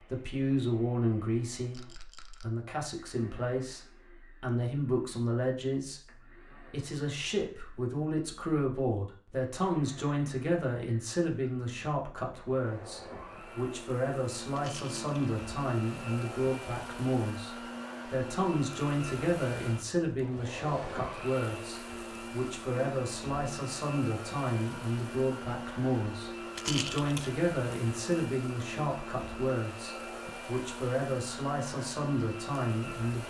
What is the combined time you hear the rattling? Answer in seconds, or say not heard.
2 s.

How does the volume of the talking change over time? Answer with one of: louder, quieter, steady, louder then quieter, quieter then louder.
steady.